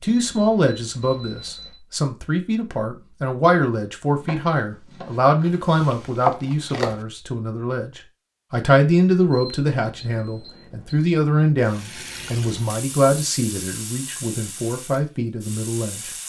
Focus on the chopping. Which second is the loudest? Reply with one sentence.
The volume of the chopping peaks at 6 seconds.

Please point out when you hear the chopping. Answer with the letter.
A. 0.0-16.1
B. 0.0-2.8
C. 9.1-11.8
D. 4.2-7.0
D.